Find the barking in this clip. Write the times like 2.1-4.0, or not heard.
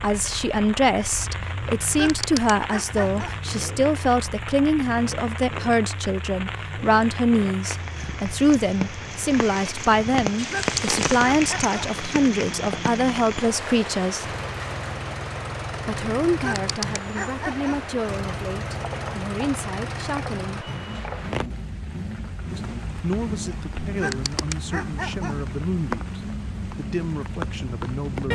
1.9-3.5, 10.4-11.8, 16.4-17.9, 23.9-25.4.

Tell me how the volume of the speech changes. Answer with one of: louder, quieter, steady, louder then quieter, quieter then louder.
quieter.